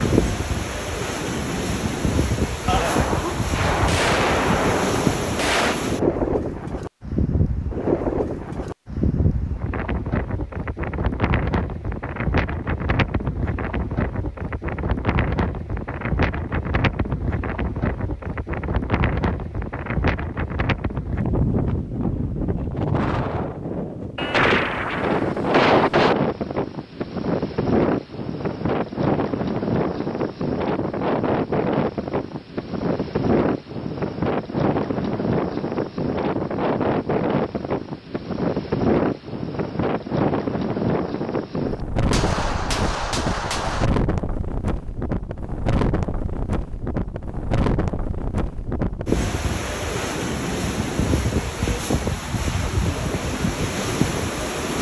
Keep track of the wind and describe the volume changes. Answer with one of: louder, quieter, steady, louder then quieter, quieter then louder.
steady.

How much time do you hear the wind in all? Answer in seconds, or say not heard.
55 s.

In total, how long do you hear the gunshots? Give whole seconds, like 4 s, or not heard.
7 s.